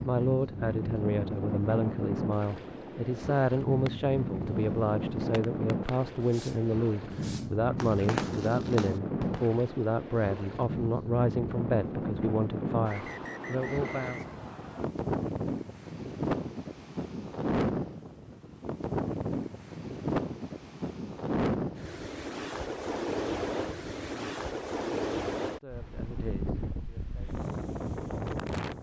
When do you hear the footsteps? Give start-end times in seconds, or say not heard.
not heard.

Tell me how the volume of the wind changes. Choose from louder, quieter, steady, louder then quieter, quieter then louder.
steady.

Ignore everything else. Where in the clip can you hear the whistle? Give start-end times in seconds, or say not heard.
12.8-14.8.